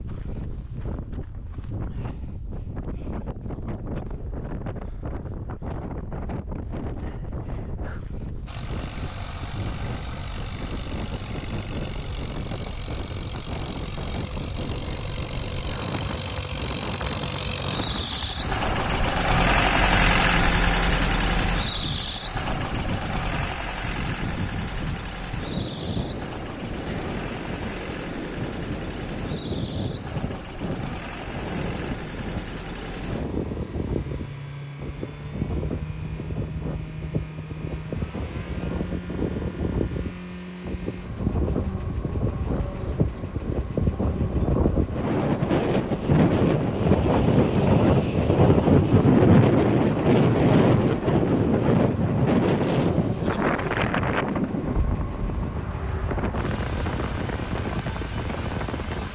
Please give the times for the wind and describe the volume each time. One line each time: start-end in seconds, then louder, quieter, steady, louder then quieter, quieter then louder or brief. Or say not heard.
0.0-59.1 louder.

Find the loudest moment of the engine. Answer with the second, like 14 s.
20 s.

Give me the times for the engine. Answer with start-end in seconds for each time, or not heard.
8.4-59.1.